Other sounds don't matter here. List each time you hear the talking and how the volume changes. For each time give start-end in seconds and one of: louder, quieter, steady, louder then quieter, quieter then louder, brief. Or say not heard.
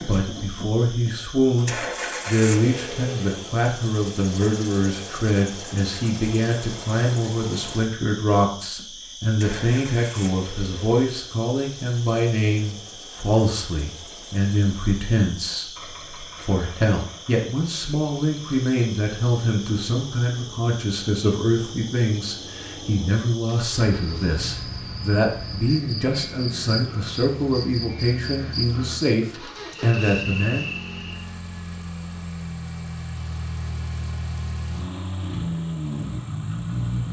0.0-30.7 steady.